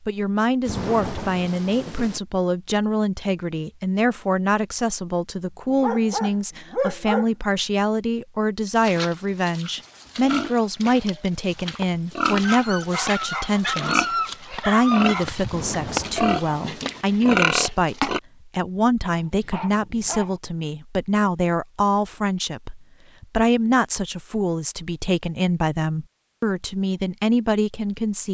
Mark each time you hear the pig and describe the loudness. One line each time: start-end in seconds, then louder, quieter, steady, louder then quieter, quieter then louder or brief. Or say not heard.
8.7-18.2 louder.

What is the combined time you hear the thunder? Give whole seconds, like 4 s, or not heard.
3 s.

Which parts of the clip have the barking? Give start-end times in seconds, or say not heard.
5.7-7.2, 12.4-15.2, 19.1-20.4.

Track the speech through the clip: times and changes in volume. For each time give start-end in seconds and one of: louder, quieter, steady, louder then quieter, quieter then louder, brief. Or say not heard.
0.1-28.2 steady.